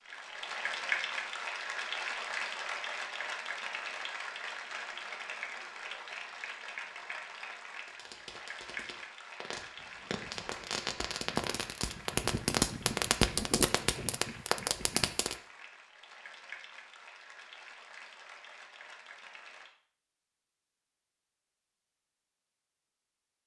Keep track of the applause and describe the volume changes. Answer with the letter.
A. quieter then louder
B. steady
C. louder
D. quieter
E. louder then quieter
D.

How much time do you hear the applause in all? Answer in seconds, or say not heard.
20 s.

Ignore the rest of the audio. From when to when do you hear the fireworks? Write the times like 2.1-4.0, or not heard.
7.8-15.3.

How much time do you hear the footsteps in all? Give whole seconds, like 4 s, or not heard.
not heard.